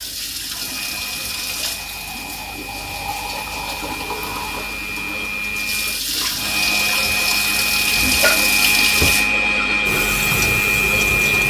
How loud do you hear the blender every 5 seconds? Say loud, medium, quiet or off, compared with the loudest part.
quiet, loud, loud.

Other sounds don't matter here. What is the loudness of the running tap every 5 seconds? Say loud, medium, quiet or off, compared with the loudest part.
medium, loud, loud.